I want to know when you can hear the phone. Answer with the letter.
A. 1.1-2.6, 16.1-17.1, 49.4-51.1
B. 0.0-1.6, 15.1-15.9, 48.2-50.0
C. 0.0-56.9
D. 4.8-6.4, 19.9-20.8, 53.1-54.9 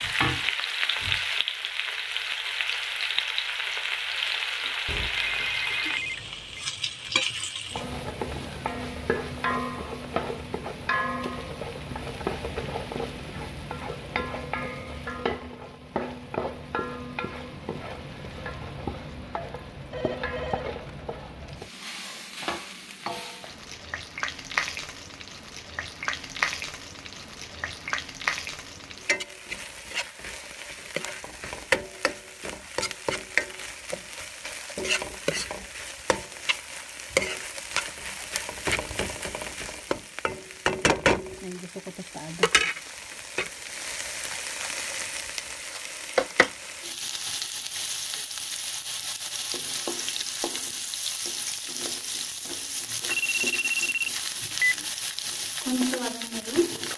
D.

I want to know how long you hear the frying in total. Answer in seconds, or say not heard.
57 s.